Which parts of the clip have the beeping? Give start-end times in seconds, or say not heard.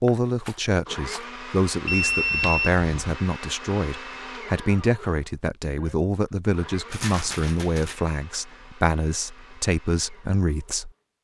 1.9-3.1.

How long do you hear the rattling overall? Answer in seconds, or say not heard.
2 s.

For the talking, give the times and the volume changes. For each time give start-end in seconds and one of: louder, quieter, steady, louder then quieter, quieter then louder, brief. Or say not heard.
0.0-10.9 steady.